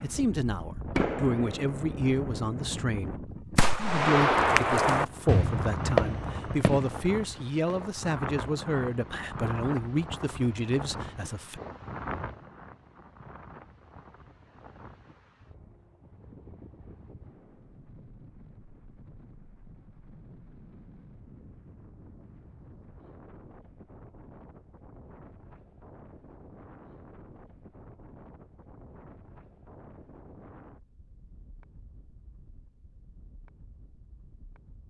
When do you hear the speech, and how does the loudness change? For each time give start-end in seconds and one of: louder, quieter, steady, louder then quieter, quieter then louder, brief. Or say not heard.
0.0-11.6 steady.